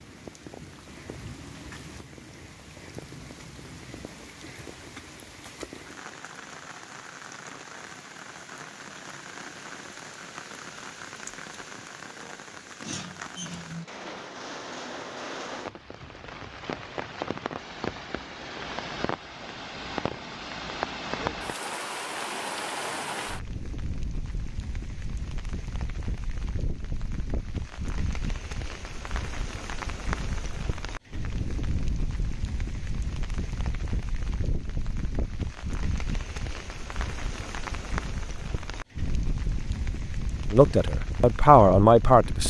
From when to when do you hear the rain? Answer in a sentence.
You can hear the rain from 0.0 to 42.4 s.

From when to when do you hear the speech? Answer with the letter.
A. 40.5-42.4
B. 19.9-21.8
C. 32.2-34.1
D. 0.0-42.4
A.